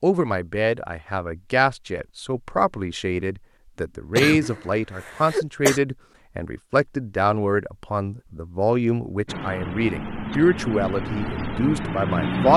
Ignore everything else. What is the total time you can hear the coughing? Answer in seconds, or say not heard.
2 s.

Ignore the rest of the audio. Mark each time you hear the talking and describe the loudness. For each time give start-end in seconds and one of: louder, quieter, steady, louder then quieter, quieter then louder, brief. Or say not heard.
0.0-12.5 steady.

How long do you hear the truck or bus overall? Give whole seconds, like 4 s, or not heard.
3 s.